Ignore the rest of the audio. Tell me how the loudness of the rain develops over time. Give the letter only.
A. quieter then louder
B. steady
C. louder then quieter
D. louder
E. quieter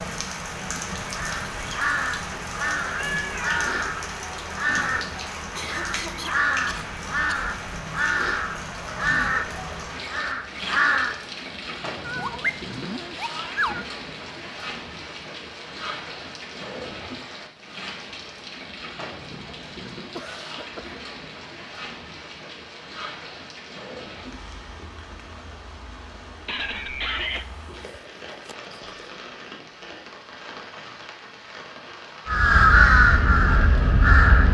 E.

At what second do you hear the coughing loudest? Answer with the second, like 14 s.
27 s.